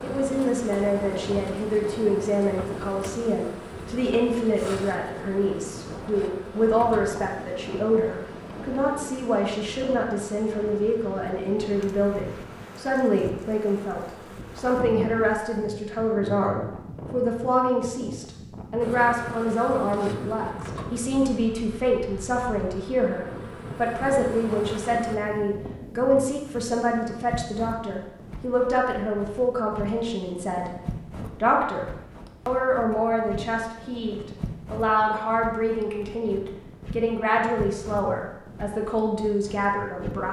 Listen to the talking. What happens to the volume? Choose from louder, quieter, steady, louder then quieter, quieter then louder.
steady.